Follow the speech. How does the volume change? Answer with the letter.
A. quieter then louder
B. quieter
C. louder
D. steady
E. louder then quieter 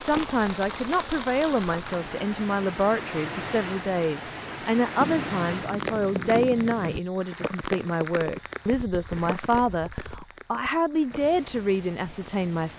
D.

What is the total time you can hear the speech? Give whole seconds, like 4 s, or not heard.
13 s.